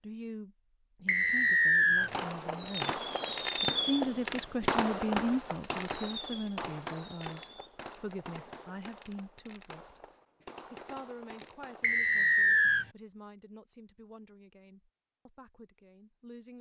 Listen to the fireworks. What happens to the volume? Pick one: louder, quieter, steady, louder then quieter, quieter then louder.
quieter.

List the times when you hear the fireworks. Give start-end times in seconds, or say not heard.
1.9-11.9.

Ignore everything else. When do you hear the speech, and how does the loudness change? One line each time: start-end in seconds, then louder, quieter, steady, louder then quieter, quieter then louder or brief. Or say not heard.
0.0-10.0 louder then quieter
10.7-16.5 quieter.